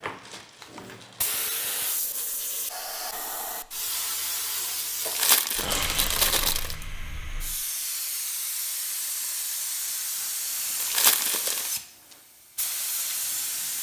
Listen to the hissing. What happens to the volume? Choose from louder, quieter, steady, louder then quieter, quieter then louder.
steady.